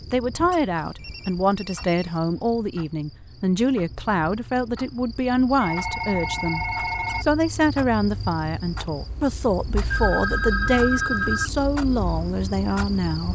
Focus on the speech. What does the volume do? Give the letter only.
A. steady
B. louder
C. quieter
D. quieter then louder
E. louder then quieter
A.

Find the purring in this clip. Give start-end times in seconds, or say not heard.
not heard.